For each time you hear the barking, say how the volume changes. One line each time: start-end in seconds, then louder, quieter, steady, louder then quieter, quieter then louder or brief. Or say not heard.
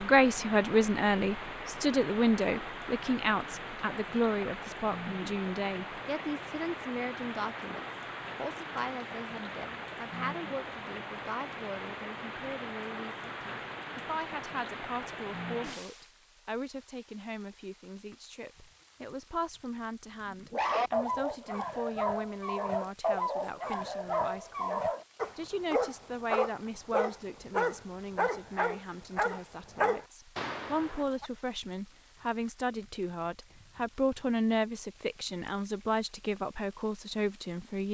20.3-31.3 steady.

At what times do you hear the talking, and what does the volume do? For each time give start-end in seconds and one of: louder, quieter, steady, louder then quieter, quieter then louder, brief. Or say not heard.
0.0-37.8 quieter then louder.